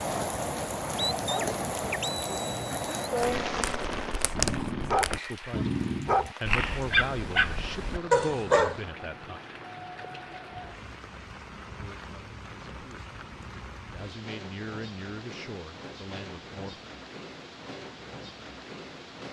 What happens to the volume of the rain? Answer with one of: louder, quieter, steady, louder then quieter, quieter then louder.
quieter.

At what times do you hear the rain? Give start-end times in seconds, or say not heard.
0.0-19.2.